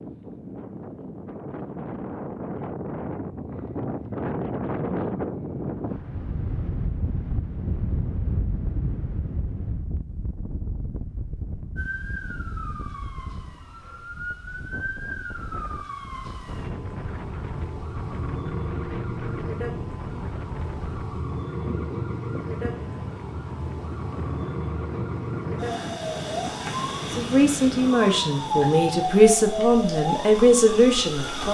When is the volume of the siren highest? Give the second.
29 s.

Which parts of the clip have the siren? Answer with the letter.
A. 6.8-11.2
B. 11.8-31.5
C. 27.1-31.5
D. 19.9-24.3
B.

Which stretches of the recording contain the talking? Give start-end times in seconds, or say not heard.
27.1-31.5.